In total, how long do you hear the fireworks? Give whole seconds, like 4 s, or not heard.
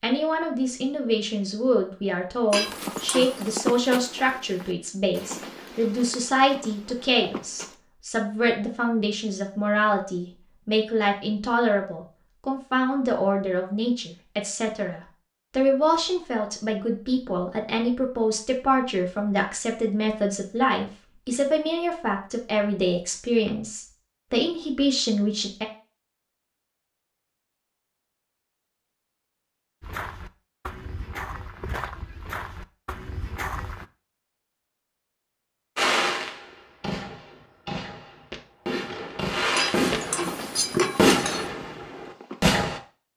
7 s.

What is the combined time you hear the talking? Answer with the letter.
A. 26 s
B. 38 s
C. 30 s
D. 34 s
A.